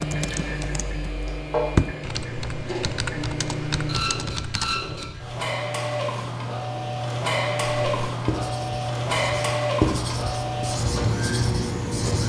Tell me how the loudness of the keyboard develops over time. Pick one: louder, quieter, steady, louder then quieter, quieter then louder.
louder then quieter.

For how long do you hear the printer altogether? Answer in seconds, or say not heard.
12 s.